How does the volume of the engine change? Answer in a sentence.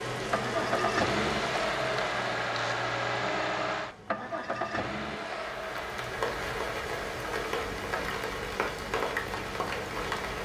The loudness of the engine goes down.